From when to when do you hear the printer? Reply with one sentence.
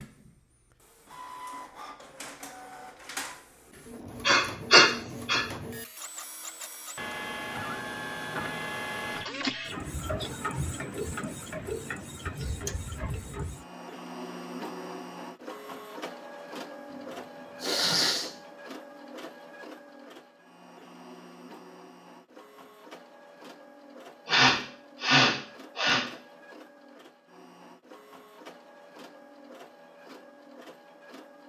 The printer can be heard from 0.0 to 31.4 s.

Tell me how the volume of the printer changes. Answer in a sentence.
The volume of the printer goes up, then down.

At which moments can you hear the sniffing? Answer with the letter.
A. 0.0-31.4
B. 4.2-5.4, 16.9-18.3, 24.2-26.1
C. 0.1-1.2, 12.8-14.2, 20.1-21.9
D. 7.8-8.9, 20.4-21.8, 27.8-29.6
B.